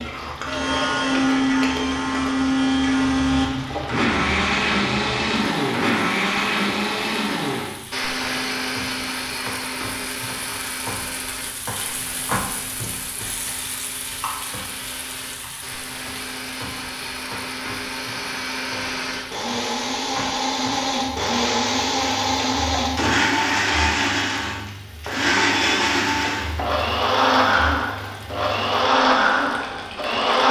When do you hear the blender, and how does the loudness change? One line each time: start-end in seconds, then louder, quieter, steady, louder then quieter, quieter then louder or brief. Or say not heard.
0.0-30.4 quieter then louder.